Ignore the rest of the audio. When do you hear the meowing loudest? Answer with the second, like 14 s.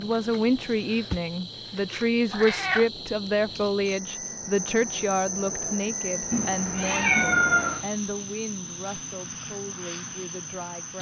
7 s.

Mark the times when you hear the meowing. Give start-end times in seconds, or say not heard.
2.3-2.9, 6.3-7.8.